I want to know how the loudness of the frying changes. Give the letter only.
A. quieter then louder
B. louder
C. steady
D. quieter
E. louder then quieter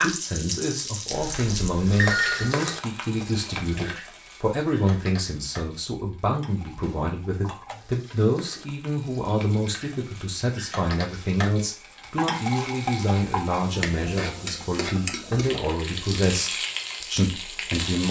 A.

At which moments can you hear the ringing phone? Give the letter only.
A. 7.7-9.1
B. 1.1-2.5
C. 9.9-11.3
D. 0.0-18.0
B.